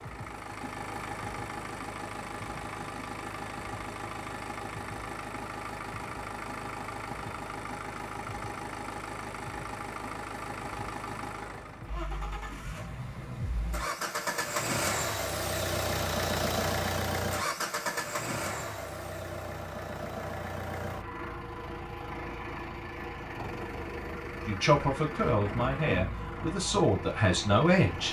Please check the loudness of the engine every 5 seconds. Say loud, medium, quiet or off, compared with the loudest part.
medium, medium, loud, loud, medium, medium.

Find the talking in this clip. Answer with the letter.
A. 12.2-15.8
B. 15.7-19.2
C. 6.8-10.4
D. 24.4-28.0
D.